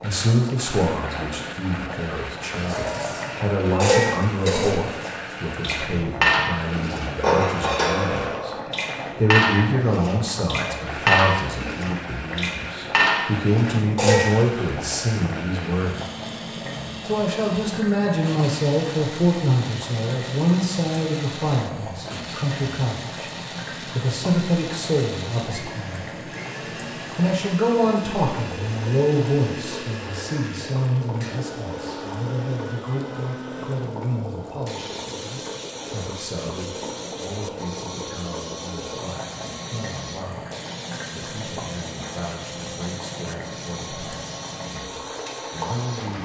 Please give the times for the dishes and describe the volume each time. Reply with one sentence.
The dishes can be heard from 2.5 to 14.4 s, at a steady volume.